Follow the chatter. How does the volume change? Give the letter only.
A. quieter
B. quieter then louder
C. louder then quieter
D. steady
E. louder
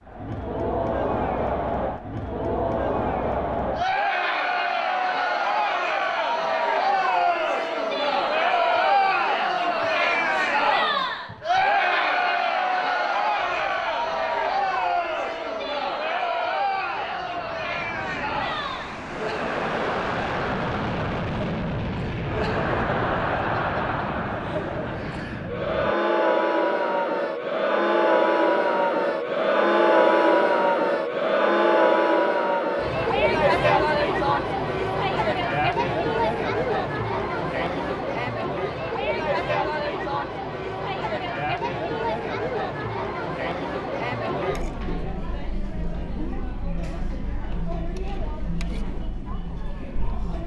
A.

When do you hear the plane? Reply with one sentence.
The plane can be heard from 13.3 to 25.9 s.